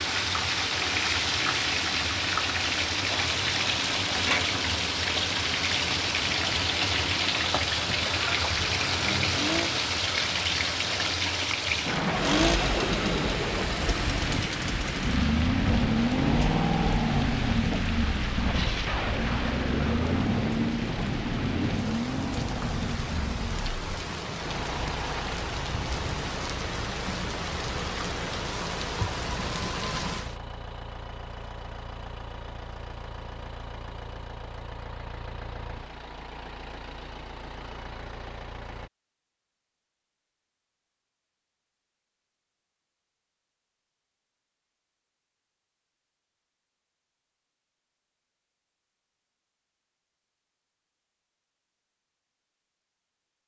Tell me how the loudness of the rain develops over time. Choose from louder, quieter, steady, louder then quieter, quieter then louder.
quieter.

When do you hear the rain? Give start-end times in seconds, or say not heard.
0.0-30.4.